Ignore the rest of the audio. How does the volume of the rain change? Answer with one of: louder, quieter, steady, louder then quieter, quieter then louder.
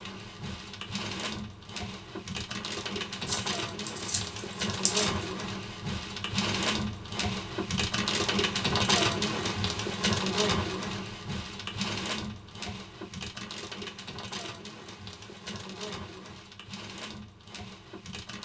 louder then quieter.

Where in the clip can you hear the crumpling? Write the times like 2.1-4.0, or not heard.
3.2-5.2.